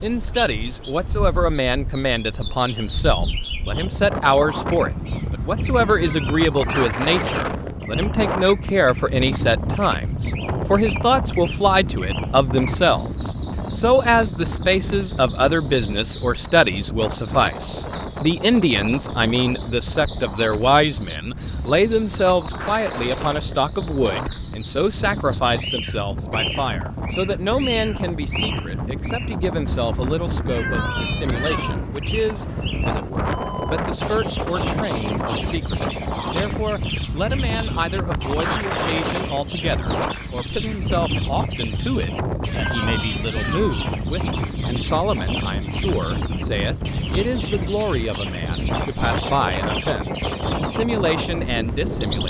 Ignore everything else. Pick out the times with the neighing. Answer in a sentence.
The neighing can't be heard in this clip.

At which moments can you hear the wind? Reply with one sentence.
You can hear the wind from 0.0 to 52.2 s.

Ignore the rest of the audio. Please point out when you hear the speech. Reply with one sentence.
You can hear the speech from 0.0 to 52.2 s.